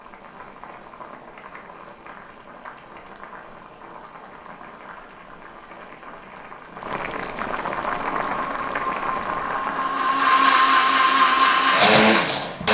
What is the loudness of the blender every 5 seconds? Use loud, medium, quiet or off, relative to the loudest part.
off, quiet, loud.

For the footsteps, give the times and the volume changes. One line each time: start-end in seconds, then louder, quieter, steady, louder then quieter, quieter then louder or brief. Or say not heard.
not heard.